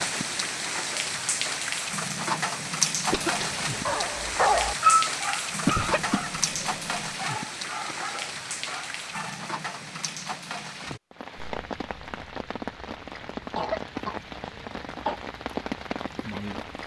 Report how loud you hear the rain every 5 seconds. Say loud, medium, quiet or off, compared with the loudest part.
loud, loud, medium, medium.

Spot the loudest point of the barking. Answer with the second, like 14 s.
5 s.